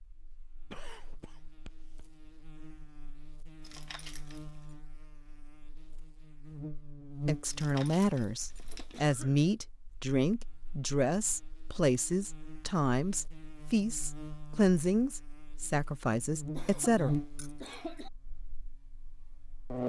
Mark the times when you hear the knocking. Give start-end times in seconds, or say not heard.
not heard.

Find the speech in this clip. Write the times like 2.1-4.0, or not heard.
7.2-17.1.